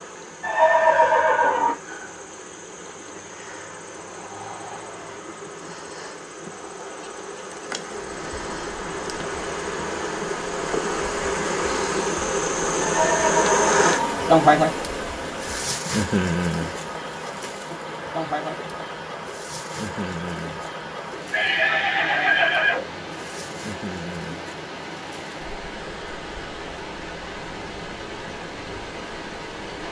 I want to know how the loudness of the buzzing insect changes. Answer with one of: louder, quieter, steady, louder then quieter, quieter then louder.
louder then quieter.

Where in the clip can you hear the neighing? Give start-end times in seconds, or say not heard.
0.4-1.8, 12.8-14.4, 21.3-22.9.